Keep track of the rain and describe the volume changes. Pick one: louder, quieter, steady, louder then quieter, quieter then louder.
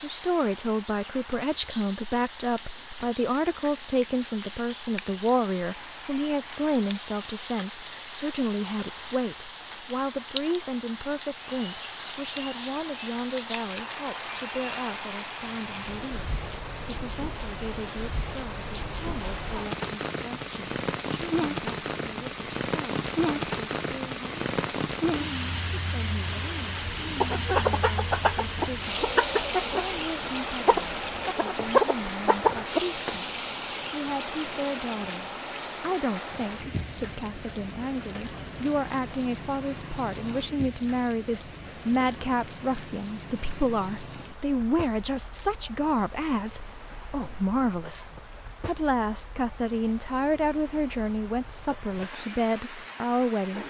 louder then quieter.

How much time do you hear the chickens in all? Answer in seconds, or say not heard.
6 s.